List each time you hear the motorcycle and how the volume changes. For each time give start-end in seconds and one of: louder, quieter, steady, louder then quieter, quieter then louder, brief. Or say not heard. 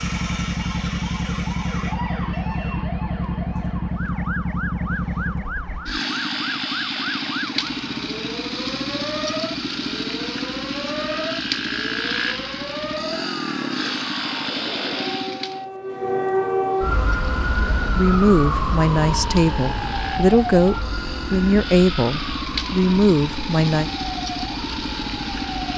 0.0-15.7 steady
16.6-25.7 louder.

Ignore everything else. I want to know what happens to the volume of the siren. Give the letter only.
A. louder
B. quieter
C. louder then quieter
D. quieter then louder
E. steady
C.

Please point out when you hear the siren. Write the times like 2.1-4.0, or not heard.
0.0-25.7.